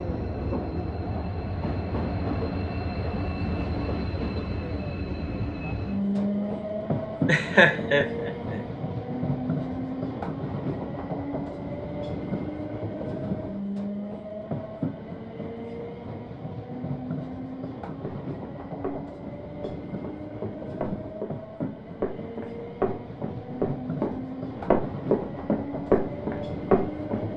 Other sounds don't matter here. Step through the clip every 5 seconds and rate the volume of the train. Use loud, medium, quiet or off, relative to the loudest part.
loud, loud, loud, medium, medium, loud.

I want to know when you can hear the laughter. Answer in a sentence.
You can hear the laughter from 7.2 to 8.6 s.